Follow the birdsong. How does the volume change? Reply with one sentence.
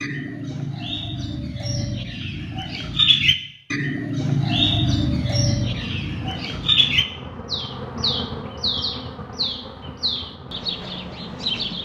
The loudness of the birdsong goes up, then down.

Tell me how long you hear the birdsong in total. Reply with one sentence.
You can hear the birdsong for 12 seconds altogether.